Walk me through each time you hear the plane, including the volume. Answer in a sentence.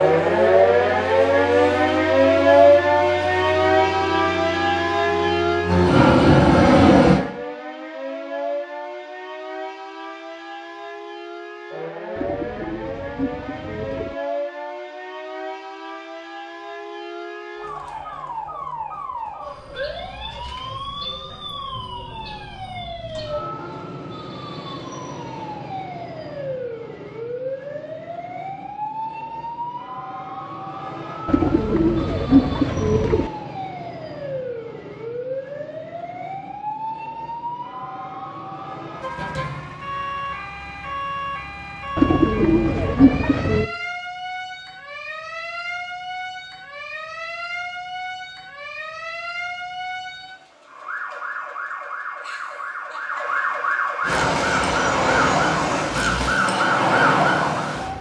The plane can be heard from 0.0 to 7.2 s, getting louder; and briefly from 54.0 to 56.4 s.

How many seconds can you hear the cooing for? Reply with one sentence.
The cooing can be heard for 6 seconds in total.